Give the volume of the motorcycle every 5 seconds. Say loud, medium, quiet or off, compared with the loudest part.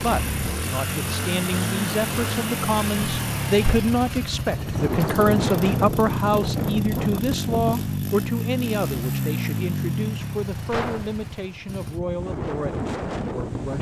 loud, loud, medium.